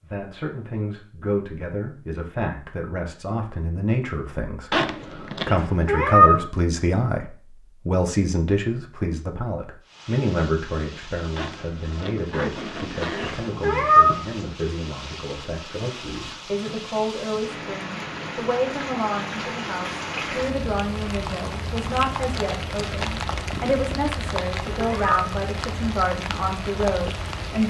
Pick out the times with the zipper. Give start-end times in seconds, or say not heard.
4.7-5.5, 11.3-13.3, 22.3-24.0.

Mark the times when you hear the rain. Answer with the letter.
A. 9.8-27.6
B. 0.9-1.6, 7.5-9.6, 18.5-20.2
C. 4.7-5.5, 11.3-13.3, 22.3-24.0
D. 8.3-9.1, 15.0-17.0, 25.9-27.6
A.